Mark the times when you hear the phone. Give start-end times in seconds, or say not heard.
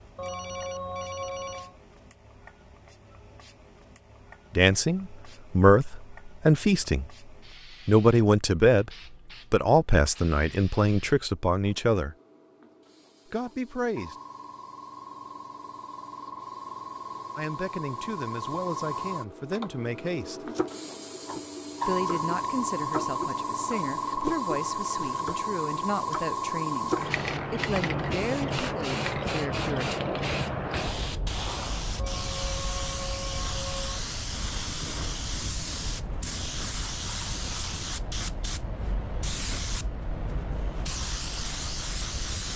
0.1-1.8, 31.9-34.0.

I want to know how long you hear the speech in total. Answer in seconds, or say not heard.
18 s.